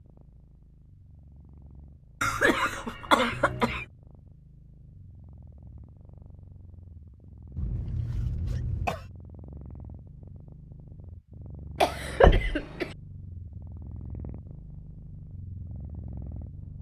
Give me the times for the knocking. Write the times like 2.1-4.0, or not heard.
12.2-12.6.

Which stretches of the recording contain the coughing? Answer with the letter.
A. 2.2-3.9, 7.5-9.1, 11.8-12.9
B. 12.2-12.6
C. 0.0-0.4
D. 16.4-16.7
A.